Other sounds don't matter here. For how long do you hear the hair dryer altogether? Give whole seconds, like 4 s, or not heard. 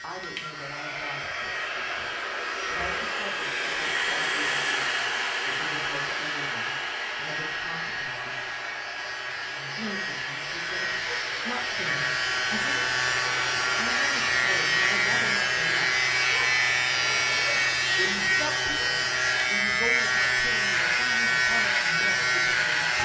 23 s.